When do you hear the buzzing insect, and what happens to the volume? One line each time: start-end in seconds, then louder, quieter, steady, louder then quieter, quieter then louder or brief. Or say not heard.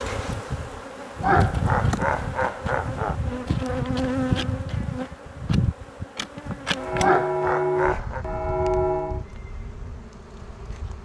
0.0-11.0 quieter.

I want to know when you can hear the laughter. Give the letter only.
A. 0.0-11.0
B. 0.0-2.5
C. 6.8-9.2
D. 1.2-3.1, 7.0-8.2
D.